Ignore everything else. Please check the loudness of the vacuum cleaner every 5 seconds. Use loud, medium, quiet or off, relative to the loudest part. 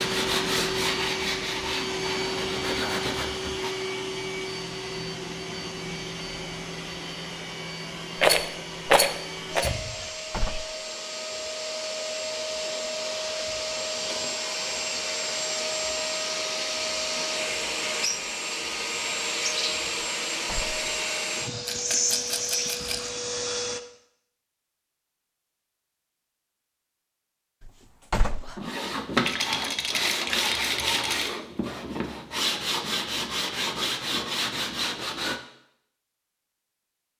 loud, medium, loud, loud, loud, off, off, off.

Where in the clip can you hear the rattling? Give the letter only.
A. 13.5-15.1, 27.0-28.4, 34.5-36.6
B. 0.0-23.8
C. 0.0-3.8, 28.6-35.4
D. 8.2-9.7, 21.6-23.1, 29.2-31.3
D.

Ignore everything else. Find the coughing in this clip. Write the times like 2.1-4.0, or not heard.
not heard.